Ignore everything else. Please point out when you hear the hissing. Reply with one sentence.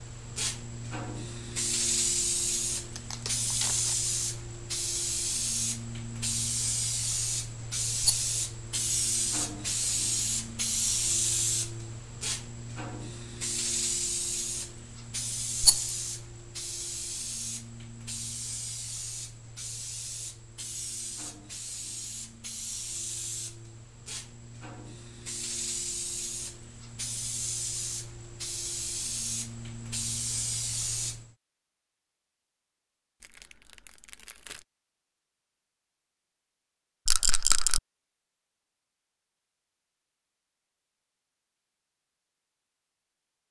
You can hear the hissing from 0.0 to 31.2 s.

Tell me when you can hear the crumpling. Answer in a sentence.
The crumpling can be heard from 3.0 to 4.0 s and from 33.2 to 34.6 s.